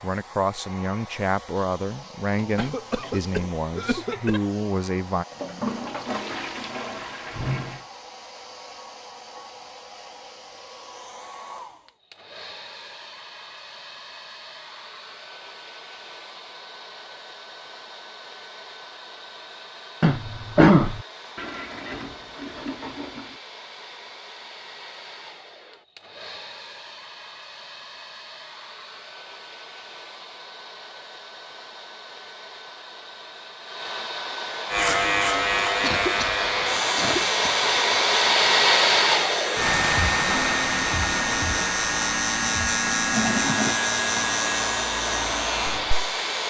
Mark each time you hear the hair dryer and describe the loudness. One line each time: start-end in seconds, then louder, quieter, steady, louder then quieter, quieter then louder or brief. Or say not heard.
0.0-46.4 louder.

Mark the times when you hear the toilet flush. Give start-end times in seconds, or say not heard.
5.3-7.8, 21.4-23.4, 43.1-43.8.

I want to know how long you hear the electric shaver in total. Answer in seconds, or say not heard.
12 s.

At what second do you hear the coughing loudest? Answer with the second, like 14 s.
21 s.